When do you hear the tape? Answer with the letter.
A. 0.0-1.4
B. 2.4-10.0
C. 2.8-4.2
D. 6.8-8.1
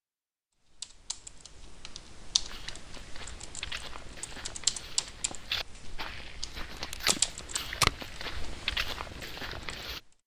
D.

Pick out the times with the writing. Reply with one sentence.
The writing can't be heard in this clip.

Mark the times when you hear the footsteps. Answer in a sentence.
You can hear the footsteps from 2.4 to 10.0 s.